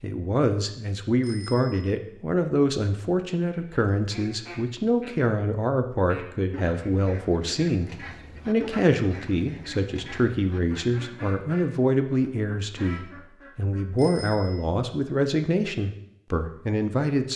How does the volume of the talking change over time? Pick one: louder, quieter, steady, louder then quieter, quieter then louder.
steady.